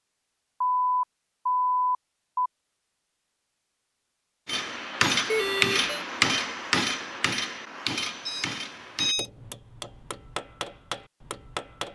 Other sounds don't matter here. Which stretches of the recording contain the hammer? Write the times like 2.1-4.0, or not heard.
4.5-11.9.